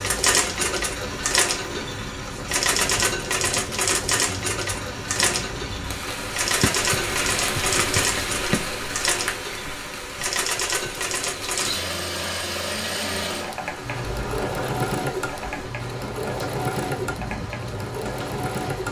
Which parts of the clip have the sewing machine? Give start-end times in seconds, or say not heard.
0.0-18.8.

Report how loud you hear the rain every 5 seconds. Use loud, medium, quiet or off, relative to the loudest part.
medium, loud, medium, medium.